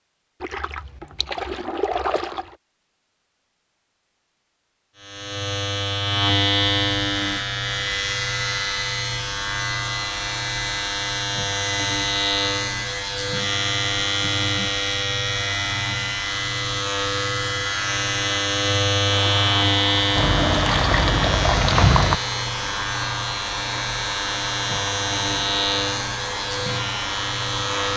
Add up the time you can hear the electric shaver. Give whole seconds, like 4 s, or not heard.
23 s.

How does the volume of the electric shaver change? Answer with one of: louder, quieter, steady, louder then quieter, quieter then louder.
steady.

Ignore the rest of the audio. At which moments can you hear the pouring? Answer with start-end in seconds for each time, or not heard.
0.4-2.5, 20.1-22.1.